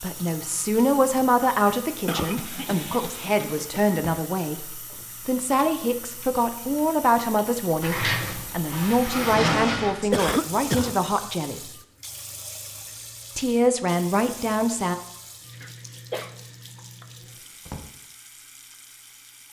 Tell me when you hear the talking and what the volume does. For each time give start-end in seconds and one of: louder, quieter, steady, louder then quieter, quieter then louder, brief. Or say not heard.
0.0-11.6 steady
13.3-14.9 brief.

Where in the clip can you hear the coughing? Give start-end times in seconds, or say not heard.
2.0-4.0, 10.1-10.9, 15.6-16.4.